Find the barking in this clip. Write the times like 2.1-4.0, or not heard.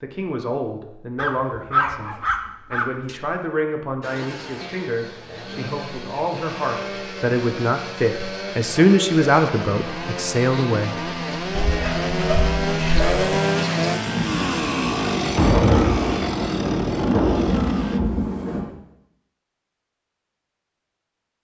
1.1-3.2, 11.6-13.3.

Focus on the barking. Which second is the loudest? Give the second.
2 s.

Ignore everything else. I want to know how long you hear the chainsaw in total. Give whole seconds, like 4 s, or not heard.
14 s.